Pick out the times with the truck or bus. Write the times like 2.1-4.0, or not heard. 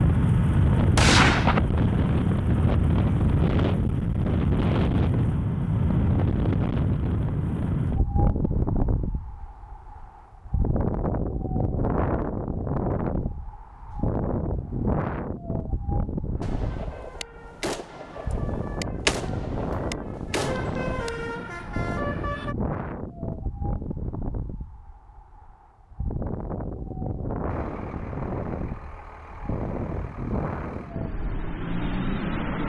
16.4-22.6, 27.4-32.6.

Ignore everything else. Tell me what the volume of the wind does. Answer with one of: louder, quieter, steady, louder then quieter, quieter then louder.
quieter.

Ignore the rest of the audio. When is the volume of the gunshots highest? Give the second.
1 s.